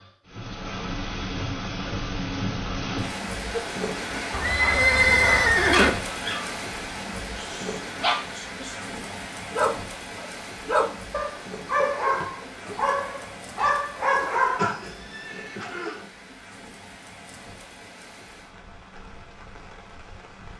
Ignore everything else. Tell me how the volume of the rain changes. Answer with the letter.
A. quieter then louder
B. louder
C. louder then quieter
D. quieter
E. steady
D.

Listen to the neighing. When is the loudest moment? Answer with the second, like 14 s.
5 s.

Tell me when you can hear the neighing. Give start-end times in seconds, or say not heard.
4.3-5.9, 14.6-16.1.